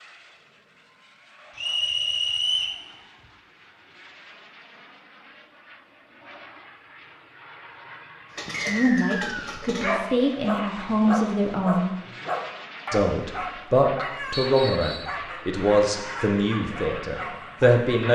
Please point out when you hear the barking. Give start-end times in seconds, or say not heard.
8.3-17.9.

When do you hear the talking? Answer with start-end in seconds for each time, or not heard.
8.7-11.9, 12.9-18.0.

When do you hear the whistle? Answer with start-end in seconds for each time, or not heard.
1.6-2.8, 8.7-9.7, 14.3-15.2.